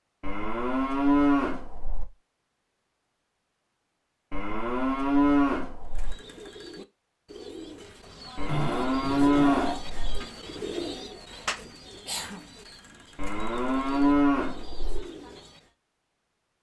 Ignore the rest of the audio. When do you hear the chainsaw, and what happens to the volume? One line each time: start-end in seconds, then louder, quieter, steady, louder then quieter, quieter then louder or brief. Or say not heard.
not heard.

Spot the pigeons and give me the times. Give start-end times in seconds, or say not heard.
5.8-15.7.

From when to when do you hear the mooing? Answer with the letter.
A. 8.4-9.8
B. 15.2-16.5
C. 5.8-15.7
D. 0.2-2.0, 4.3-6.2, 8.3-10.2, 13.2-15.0
D.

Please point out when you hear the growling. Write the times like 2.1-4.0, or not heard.
8.4-9.8.